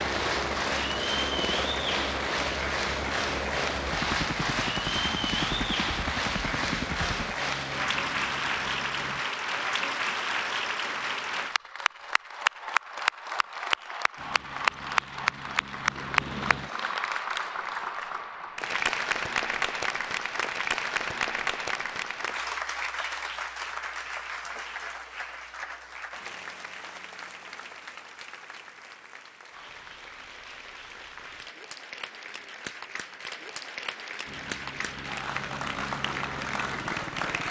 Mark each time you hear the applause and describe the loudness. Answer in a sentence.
The applause can be heard from 0.0 to 37.4 s, getting quieter.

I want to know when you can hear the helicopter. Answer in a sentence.
The helicopter can be heard from 0.0 to 9.2 s, from 14.2 to 16.9 s and from 34.2 to 37.4 s.